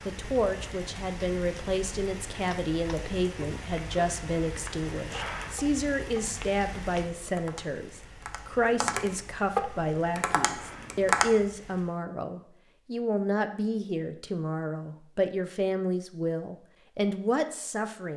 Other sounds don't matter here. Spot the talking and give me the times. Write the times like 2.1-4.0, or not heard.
0.1-18.1.